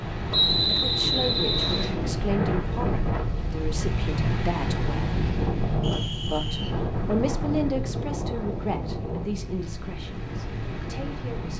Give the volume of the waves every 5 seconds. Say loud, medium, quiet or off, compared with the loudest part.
loud, loud, medium.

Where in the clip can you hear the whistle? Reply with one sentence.
You can hear the whistle from 0.3 to 1.9 s and from 5.8 to 6.8 s.